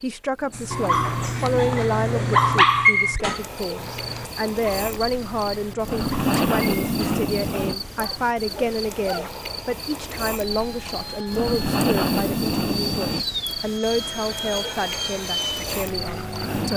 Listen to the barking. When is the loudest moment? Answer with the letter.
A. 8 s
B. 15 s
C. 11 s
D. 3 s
D.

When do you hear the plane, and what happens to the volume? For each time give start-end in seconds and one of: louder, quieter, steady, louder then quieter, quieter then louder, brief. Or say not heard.
10.3-16.7 louder.